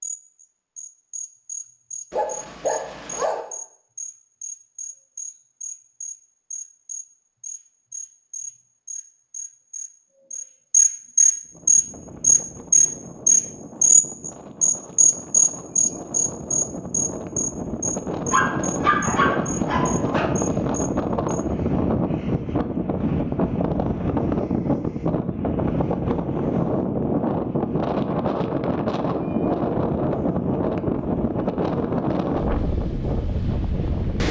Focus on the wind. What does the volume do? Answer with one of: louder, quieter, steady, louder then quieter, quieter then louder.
louder.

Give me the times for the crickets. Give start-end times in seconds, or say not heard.
0.0-21.4.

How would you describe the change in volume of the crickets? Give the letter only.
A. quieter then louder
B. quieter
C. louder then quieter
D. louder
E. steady
C.